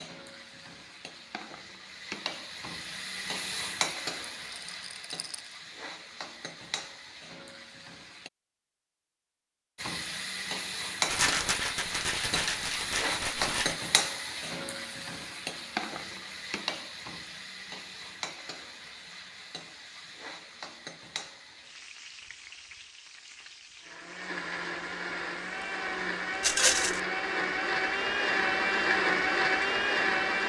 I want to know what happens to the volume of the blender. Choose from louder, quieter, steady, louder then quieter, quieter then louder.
louder.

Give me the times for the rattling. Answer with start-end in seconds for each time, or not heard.
4.5-5.5, 11.1-13.8, 26.4-27.0.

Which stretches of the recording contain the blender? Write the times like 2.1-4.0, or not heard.
23.8-30.4.